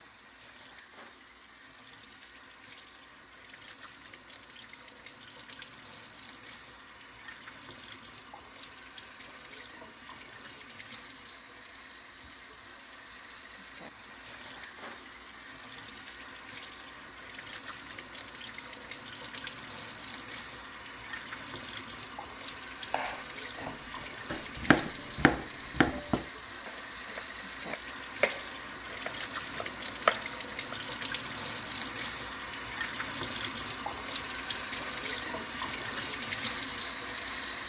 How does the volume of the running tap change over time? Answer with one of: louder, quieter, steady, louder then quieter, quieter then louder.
louder.